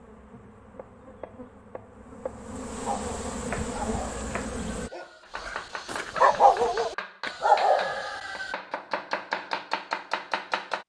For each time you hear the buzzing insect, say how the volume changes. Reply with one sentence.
You can hear the buzzing insect from 0.0 to 4.9 s, getting louder.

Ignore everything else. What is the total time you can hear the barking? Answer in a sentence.
The barking can be heard for 6 seconds in total.